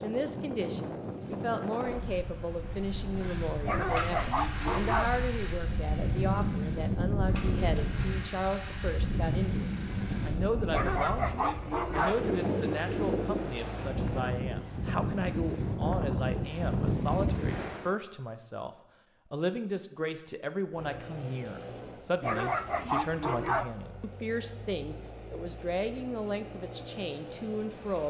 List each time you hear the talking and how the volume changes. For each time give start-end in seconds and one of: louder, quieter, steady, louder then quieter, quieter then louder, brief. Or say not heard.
0.0-28.0 steady.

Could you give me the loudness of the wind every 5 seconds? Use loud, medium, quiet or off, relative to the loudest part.
medium, loud, loud, loud, off, off.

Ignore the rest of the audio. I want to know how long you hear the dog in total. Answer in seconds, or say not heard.
4 s.